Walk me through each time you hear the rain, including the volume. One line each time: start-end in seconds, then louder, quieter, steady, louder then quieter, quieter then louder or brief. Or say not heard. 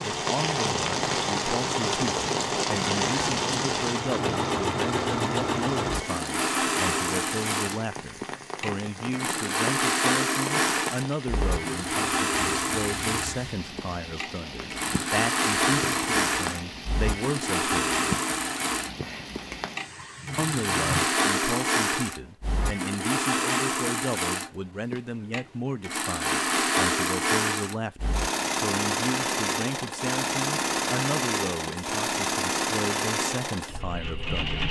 0.0-21.1 quieter.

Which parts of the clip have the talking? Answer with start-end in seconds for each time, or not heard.
0.1-18.1, 20.4-34.6.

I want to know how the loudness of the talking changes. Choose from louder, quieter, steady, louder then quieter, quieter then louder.
steady.